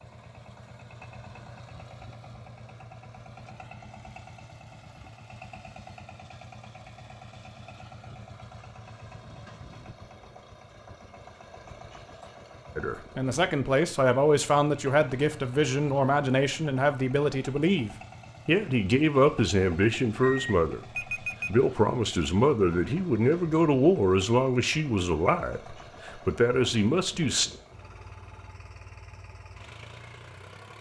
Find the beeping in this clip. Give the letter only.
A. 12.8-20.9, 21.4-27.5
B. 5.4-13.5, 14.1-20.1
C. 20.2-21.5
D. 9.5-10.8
C.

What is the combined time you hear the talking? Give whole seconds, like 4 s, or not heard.
14 s.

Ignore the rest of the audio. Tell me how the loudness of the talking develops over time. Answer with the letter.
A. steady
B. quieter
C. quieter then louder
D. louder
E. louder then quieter
A.